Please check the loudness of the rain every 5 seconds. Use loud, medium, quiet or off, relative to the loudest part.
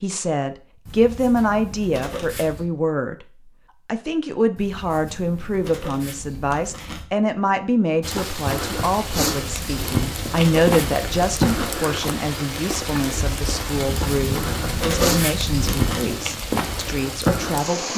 off, loud, loud, loud.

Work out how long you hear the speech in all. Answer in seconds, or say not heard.
17 s.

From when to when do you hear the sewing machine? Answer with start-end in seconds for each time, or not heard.
not heard.